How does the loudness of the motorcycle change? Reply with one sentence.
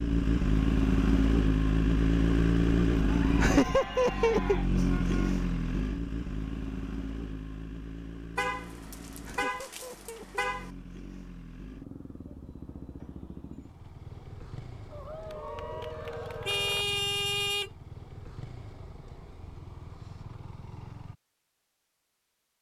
The loudness of the motorcycle goes down.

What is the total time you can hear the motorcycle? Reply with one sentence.
The motorcycle can be heard for 21 seconds in total.